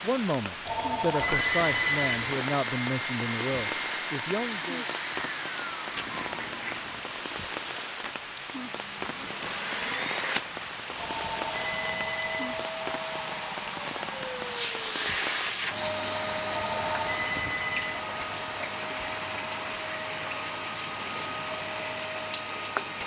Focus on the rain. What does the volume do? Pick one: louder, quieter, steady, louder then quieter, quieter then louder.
steady.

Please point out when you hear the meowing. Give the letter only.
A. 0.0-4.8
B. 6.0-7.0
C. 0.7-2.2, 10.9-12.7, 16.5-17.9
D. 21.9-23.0
B.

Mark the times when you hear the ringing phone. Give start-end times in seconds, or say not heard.
0.7-2.2, 10.9-12.7, 16.5-17.9.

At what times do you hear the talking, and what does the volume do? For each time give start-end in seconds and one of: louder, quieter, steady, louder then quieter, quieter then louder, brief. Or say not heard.
0.0-4.8 steady.